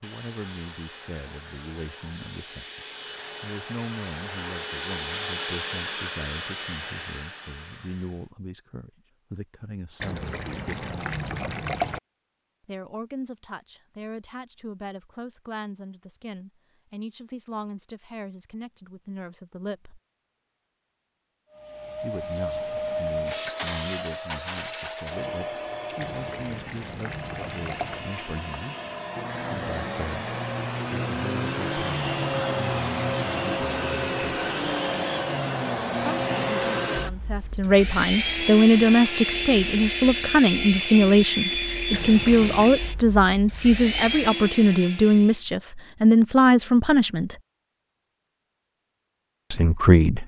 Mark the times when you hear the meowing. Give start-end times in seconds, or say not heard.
not heard.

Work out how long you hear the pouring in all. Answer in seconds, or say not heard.
5 s.